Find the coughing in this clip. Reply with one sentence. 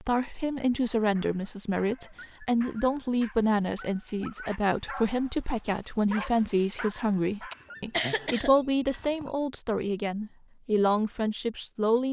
The coughing can be heard from 7.5 to 9.3 s.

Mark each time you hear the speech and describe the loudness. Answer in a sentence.
You can hear the speech from 0.0 to 12.0 s, at a steady volume.